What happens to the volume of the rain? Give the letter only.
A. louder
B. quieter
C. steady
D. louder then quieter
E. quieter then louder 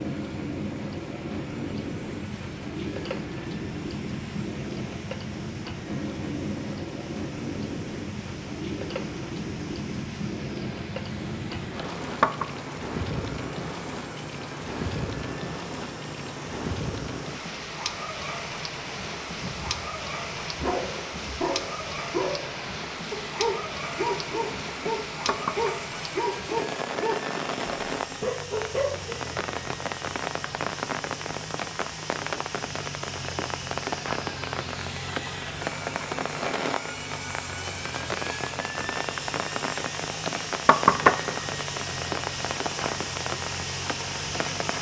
C.